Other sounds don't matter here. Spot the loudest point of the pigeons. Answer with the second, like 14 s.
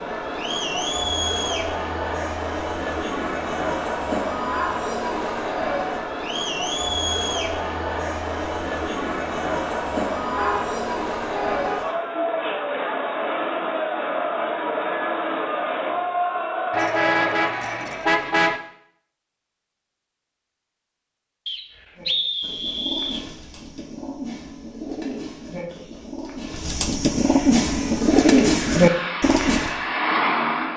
28 s.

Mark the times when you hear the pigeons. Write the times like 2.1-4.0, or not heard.
21.9-29.8.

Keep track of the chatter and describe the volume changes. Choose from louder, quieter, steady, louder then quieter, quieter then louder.
steady.